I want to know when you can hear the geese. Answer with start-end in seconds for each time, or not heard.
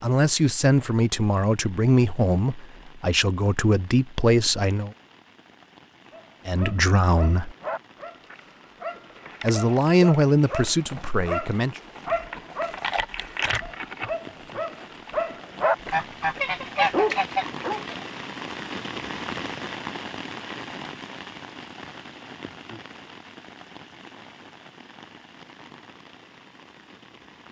15.8-18.1.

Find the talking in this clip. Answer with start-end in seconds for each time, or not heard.
0.0-4.9, 6.5-7.5, 9.4-11.8.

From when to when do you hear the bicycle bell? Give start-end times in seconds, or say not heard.
not heard.